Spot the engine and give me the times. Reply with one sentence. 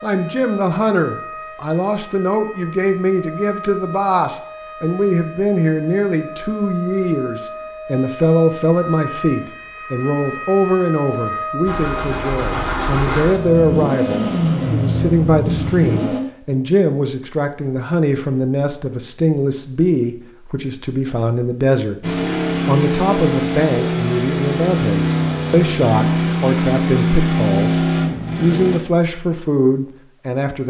You can hear the engine from 11.7 to 16.2 s and from 22.0 to 28.8 s.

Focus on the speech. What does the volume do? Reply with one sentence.
The volume of the speech stays about the same.